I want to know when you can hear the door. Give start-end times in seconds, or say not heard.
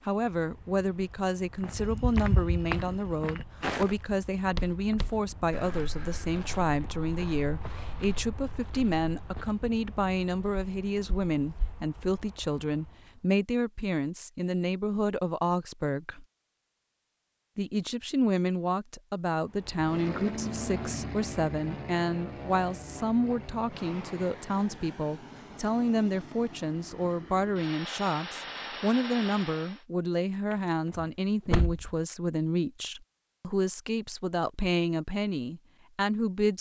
30.5-31.9.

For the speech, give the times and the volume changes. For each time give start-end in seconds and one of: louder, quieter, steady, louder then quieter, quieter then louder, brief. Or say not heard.
0.1-16.2 steady
17.6-36.5 steady.